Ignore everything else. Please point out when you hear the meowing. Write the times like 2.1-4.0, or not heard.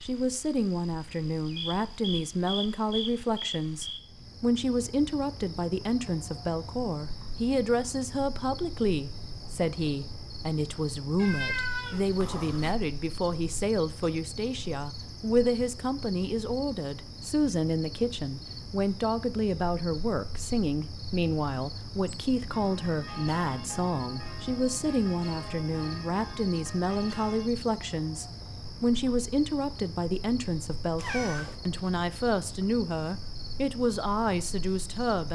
11.2-12.8, 30.9-31.6.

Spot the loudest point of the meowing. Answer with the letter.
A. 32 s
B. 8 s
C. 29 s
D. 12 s
D.